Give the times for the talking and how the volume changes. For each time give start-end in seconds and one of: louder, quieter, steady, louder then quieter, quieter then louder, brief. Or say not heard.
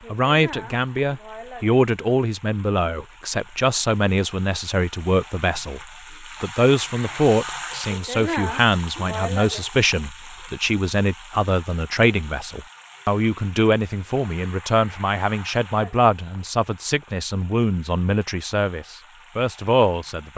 0.1-20.3 steady.